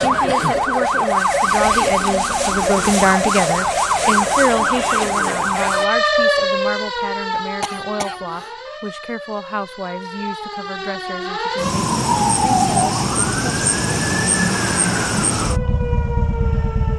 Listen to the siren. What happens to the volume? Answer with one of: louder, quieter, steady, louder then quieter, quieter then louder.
quieter then louder.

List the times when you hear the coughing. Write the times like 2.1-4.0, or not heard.
7.6-8.5.